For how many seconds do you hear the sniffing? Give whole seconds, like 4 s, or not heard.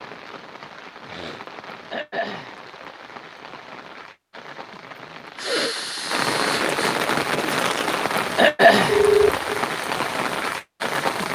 2 s.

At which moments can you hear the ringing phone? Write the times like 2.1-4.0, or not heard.
8.8-9.5.